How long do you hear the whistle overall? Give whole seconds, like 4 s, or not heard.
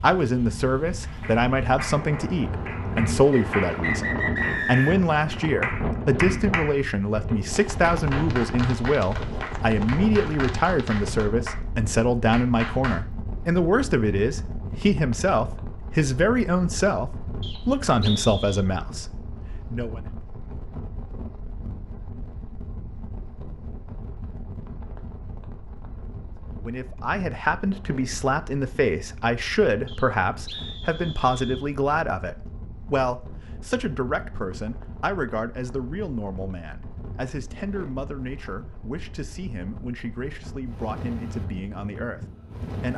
5 s.